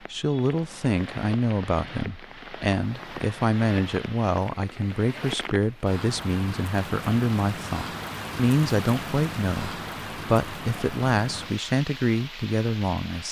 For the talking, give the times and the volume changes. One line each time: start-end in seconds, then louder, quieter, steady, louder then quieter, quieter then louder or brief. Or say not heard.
0.1-13.2 steady.